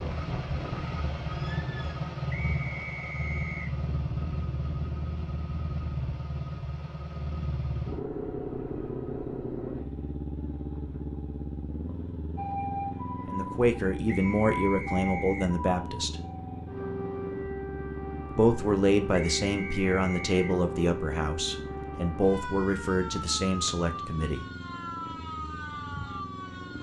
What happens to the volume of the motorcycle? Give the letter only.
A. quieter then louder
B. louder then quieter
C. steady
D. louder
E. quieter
E.